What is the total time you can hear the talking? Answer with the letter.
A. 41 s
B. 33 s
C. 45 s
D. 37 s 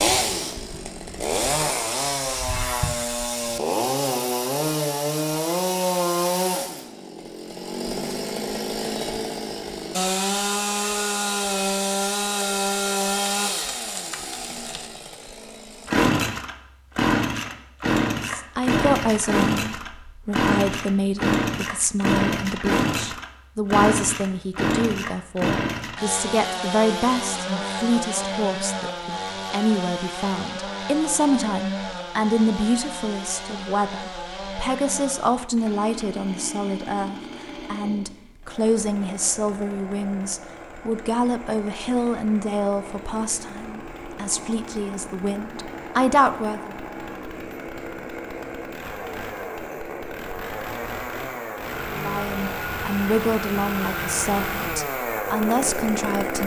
B.